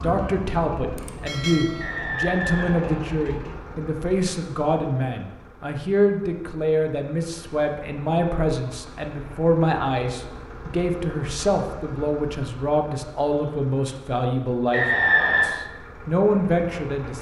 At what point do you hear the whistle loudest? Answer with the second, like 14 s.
15 s.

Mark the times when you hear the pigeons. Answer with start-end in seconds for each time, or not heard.
not heard.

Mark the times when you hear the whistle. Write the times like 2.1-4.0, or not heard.
1.8-3.1, 14.7-15.6.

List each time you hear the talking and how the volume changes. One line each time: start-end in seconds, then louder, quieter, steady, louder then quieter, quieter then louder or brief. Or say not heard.
0.0-17.1 steady.